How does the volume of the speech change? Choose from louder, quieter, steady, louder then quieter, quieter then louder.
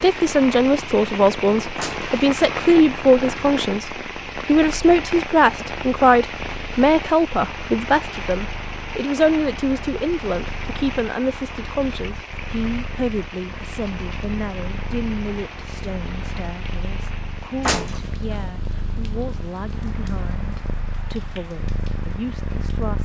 quieter.